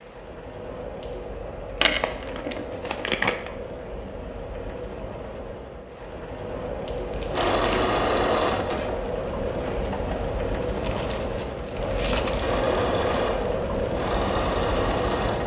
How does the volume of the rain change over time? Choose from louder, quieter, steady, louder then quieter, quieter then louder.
louder.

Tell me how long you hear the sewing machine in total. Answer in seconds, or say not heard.
6 s.